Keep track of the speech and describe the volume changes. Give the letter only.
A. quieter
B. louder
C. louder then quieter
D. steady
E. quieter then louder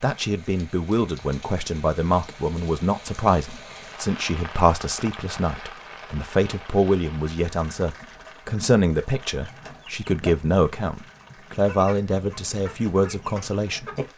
D.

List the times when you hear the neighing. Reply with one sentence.
The neighing can't be heard in this clip.